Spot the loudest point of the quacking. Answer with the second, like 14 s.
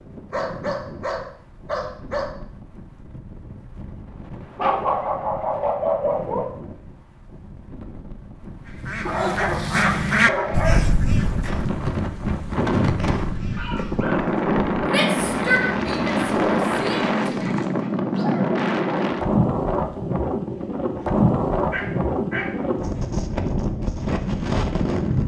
10 s.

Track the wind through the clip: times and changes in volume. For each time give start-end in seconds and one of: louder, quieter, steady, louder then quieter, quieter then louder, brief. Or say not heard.
0.0-25.2 louder.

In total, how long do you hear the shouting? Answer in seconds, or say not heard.
3 s.